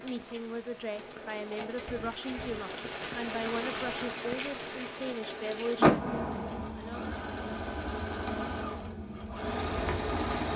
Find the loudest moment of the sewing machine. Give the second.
10 s.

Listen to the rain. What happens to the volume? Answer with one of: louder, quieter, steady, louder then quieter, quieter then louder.
louder then quieter.